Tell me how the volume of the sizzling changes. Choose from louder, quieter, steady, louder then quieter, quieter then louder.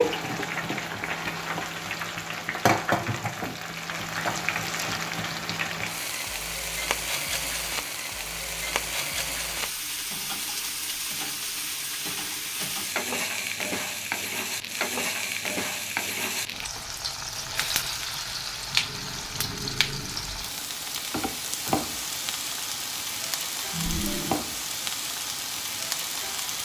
steady.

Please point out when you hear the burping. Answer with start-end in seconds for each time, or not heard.
23.7-24.4.